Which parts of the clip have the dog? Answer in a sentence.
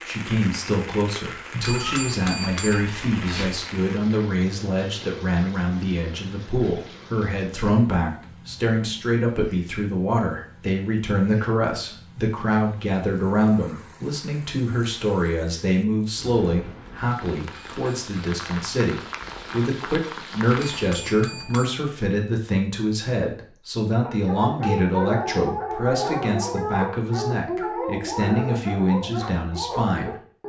The dog can be heard from 24.0 to 30.4 s.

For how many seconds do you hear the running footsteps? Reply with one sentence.
The running footsteps can't be heard in this clip.